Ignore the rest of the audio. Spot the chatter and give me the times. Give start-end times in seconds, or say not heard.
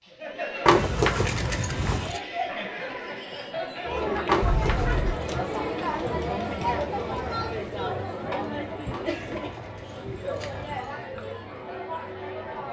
0.0-12.6.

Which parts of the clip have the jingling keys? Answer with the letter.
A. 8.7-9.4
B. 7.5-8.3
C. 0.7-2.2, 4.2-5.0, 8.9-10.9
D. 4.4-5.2
C.